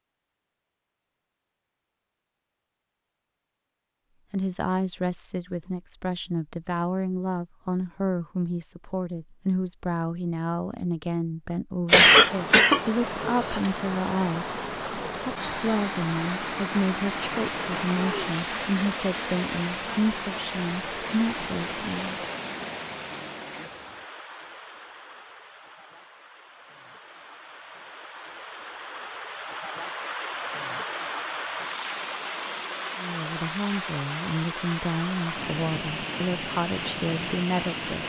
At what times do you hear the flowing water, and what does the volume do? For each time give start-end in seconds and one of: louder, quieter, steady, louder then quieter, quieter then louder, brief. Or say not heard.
12.1-38.0 quieter then louder.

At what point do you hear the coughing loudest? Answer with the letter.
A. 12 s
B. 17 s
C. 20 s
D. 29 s
A.